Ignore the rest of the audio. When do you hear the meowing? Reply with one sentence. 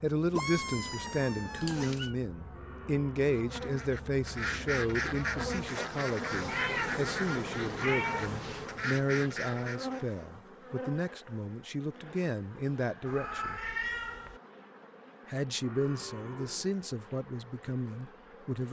The meowing can be heard from 0.3 to 2.1 s, from 6.3 to 8.7 s and from 13.1 to 14.4 s.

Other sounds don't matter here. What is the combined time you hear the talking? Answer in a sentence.
You can hear the talking for 17 seconds altogether.